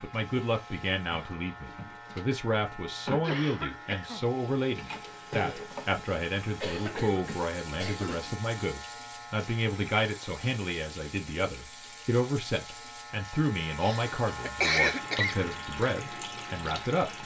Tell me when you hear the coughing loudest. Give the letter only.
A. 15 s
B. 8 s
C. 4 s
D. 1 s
A.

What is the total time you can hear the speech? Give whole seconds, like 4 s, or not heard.
17 s.